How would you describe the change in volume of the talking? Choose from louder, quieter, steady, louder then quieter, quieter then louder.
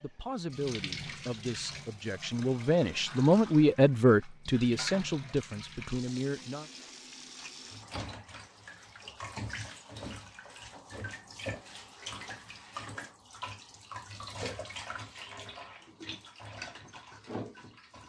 louder then quieter.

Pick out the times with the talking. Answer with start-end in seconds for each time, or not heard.
0.0-6.7.